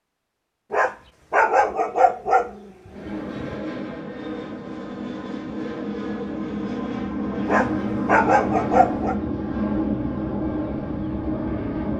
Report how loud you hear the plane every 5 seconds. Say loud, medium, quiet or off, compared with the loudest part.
medium, loud, loud.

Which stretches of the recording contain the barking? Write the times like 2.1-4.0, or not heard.
0.7-3.6, 7.5-9.2.